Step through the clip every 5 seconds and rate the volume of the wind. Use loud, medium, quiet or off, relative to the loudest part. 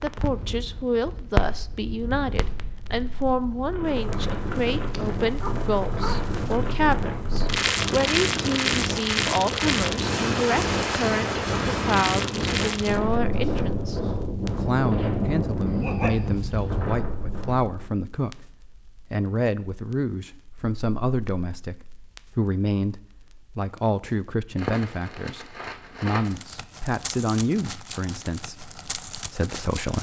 medium, loud, loud, loud, off, off.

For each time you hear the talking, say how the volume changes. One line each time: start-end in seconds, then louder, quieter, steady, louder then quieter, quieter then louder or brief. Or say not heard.
0.0-29.9 steady.